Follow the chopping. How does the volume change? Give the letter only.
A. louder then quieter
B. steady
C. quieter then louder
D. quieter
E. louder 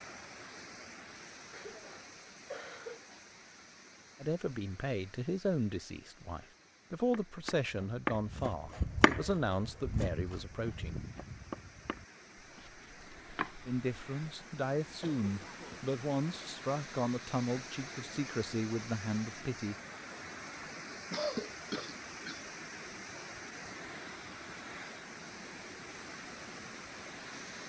D.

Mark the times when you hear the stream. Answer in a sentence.
You can hear the stream from 0.0 to 27.6 s.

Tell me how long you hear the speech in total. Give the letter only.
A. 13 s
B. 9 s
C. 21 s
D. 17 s
A.